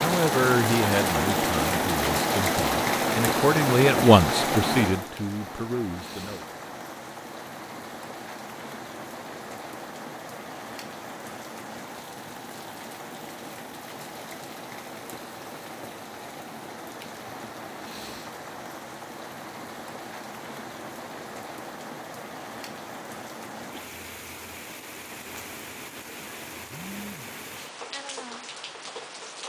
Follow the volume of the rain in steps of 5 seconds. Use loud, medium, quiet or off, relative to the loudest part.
loud, quiet, quiet, quiet, quiet, quiet.